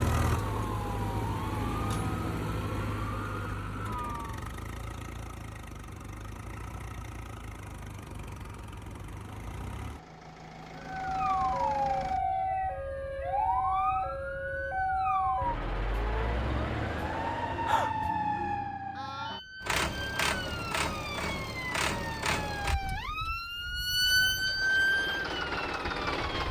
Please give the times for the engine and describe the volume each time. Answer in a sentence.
The engine can be heard from 0.0 to 12.2 s, getting quieter; and from 19.6 to 26.4 s, getting quieter then louder.